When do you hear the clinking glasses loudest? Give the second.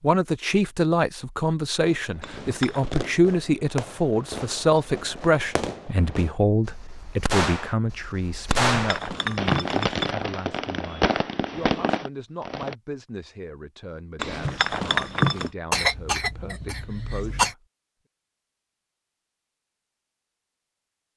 15 s.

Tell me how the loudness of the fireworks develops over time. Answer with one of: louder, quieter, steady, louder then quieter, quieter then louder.
louder.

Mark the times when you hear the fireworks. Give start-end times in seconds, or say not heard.
1.9-12.8.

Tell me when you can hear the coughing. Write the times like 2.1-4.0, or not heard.
15.7-17.6.